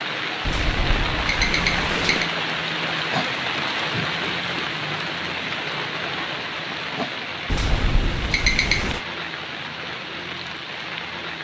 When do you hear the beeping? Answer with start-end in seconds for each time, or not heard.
0.4-2.3, 7.5-9.0.